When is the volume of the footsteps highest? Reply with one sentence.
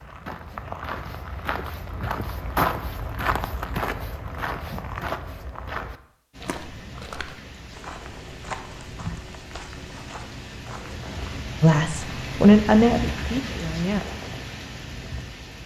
The volume of the footsteps peaks at 3 seconds.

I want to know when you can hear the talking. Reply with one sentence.
The talking can be heard from 11.6 to 14.0 s.